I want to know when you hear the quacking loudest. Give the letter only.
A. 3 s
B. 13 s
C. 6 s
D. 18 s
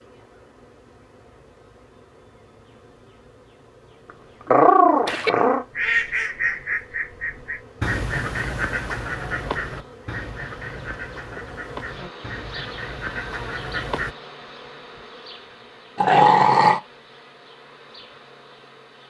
C.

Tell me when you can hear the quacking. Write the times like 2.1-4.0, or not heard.
5.0-14.2.